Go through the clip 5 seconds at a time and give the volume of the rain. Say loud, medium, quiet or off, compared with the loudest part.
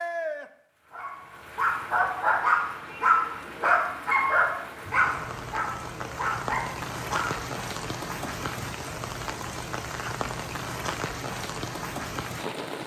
medium, loud, loud.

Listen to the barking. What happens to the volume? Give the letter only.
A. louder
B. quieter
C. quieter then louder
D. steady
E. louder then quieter
B.